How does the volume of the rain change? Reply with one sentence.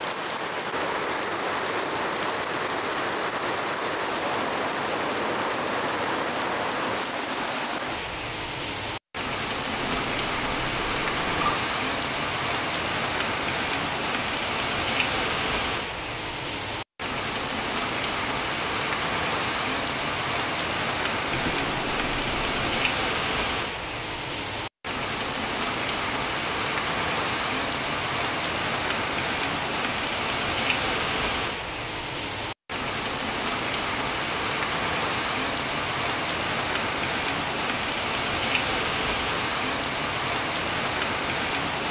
The volume of the rain stays about the same.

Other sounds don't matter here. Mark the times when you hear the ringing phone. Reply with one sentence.
The ringing phone can be heard from 9.8 to 11.6 s and from 21.3 to 22.9 s.